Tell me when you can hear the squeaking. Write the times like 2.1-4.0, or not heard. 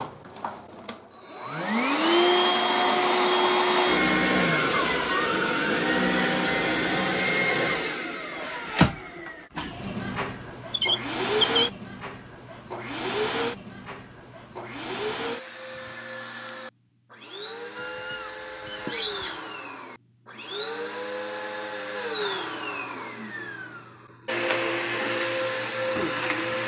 10.7-11.7, 17.8-19.4.